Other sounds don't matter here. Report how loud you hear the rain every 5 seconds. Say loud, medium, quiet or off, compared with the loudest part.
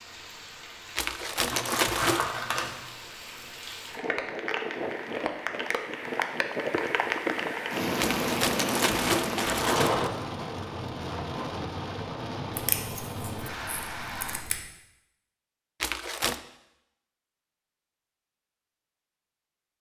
medium, loud, medium, off.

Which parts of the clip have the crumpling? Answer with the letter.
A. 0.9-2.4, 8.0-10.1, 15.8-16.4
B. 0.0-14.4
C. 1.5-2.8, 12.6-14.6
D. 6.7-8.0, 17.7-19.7
A.